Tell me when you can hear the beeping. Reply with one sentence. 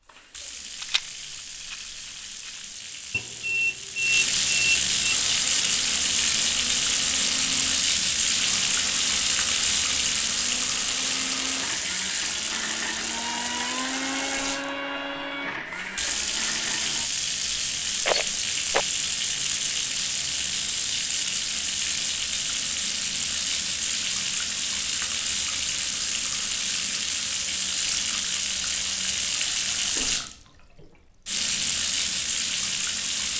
You can hear the beeping from 3.1 to 5.2 s.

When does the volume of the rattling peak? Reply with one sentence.
The volume of the rattling peaks at 18 seconds.